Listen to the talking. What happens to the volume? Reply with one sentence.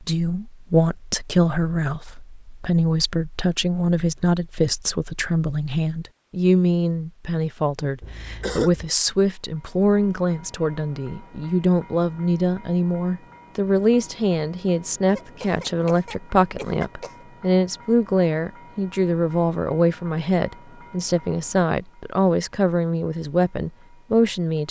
The volume of the talking stays about the same.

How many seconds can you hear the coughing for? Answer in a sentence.
You can hear the coughing for 3 seconds altogether.